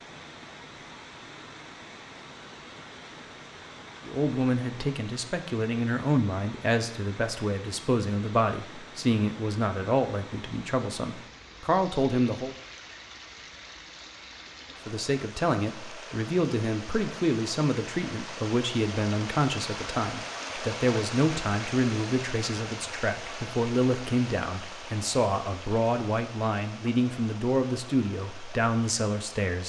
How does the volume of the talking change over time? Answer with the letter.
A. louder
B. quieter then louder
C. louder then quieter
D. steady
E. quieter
D.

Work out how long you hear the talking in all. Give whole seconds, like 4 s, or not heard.
23 s.